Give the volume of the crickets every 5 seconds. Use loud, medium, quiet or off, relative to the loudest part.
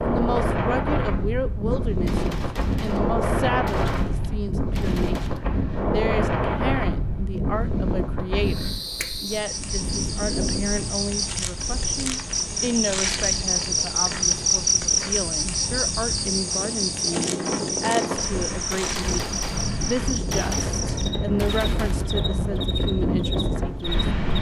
off, medium, loud, loud, medium.